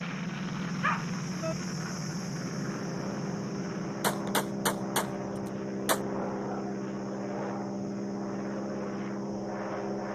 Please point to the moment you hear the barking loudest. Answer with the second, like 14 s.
1 s.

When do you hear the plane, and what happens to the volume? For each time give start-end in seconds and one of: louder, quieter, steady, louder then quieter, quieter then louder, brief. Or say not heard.
0.0-10.1 steady.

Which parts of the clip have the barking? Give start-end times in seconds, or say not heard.
0.8-1.6, 6.0-7.7.